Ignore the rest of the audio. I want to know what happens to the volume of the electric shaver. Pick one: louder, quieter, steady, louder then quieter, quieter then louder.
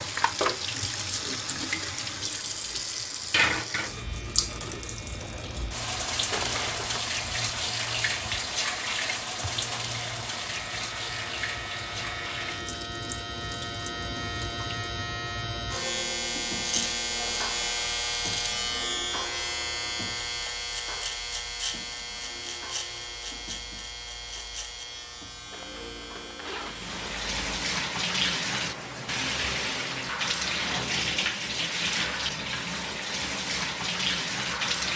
louder then quieter.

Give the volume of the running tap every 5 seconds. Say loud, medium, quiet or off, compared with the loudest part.
loud, loud, medium, off, off, loud, loud.